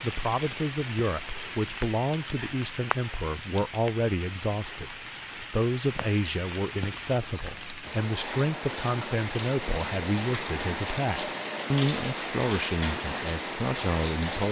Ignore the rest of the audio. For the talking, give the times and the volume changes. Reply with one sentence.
The talking can be heard from 0.0 to 14.4 s, at a steady volume.